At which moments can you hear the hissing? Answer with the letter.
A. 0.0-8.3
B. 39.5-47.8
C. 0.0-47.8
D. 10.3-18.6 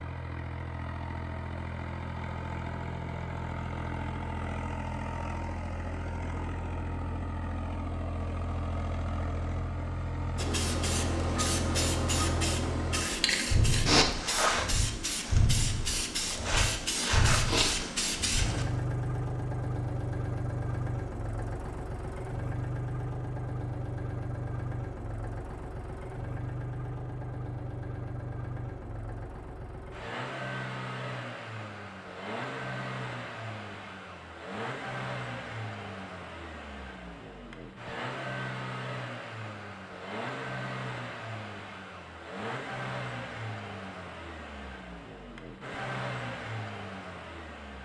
D.